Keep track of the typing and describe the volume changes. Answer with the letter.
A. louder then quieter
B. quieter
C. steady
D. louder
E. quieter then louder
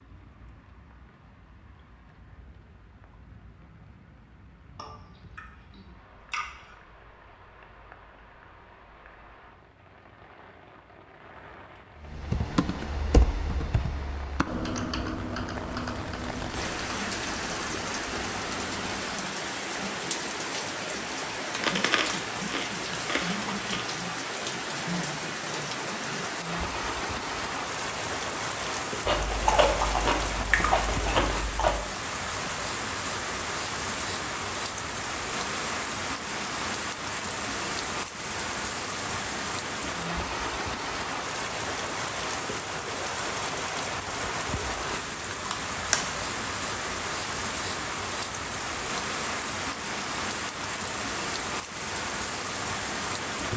B.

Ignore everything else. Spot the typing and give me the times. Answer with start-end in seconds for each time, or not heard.
12.0-19.2.